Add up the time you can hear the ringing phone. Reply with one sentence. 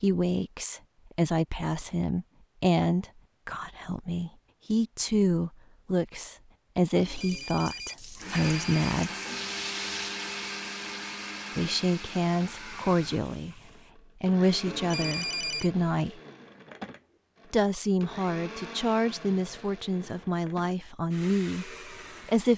The ringing phone can be heard for 3 seconds in total.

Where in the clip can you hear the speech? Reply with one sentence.
You can hear the speech from 0.0 to 9.2 s, from 11.6 to 13.6 s, from 14.2 to 16.2 s and from 17.5 to 22.5 s.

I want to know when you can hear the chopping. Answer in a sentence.
The chopping can't be heard in this clip.